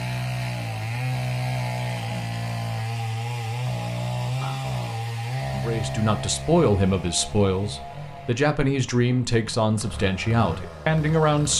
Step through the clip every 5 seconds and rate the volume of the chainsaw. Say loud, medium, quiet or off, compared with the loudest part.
loud, medium, medium.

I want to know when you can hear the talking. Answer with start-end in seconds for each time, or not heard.
5.5-11.5.